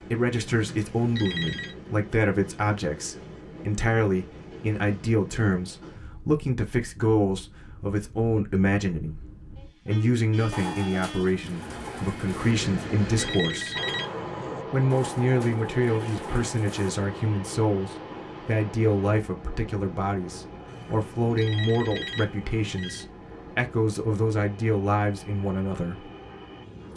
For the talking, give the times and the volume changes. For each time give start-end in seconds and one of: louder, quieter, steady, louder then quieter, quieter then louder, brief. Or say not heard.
0.0-13.8 steady
14.7-26.1 steady.